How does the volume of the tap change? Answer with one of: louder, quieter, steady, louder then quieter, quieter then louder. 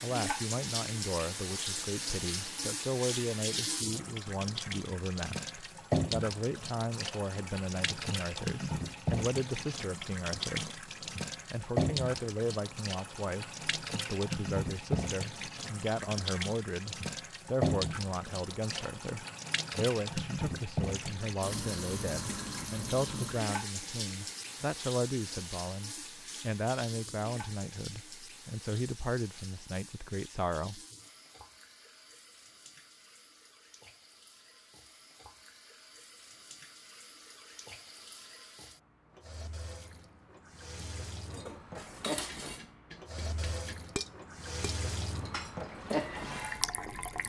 quieter then louder.